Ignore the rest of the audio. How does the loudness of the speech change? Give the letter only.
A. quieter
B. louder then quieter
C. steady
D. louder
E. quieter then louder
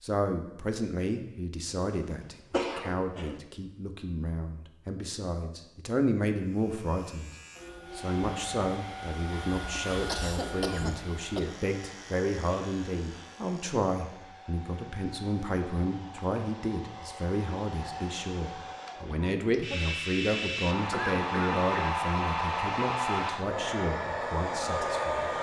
C.